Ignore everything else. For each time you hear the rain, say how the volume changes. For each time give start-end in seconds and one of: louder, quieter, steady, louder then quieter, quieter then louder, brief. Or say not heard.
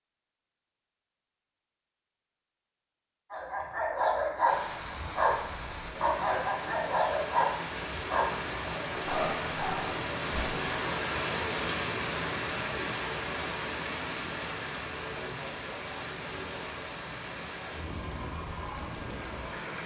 4.5-19.8 louder then quieter.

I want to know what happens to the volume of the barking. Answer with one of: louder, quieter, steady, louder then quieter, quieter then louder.
quieter.